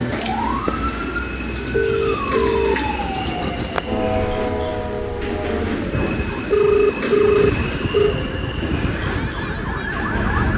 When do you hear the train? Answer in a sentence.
The train can be heard from 0.0 to 10.5 s.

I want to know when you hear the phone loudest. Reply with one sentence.
The loudest moment of the phone is at 7 seconds.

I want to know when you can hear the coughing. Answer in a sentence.
The coughing can't be heard in this clip.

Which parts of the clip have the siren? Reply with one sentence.
The siren can be heard from 0.0 to 10.5 s.